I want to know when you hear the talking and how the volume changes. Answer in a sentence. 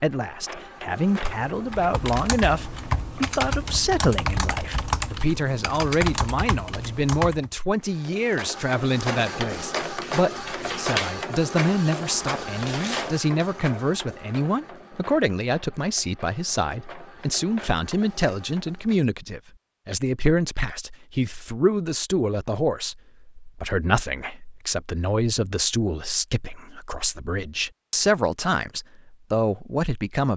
You can hear the talking from 0.0 to 30.3 s, at a steady volume.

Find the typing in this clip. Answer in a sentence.
The typing can be heard from 1.1 to 7.6 s.